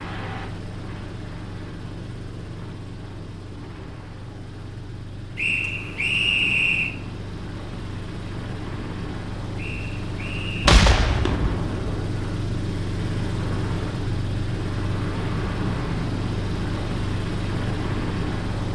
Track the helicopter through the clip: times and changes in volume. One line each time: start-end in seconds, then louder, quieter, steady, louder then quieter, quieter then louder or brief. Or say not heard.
0.0-18.7 louder.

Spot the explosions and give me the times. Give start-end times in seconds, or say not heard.
10.7-11.8.